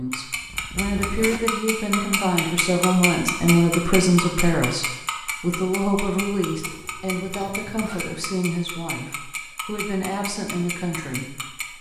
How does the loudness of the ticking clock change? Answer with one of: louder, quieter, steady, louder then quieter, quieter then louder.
quieter.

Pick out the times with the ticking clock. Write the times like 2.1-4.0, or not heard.
0.1-11.7.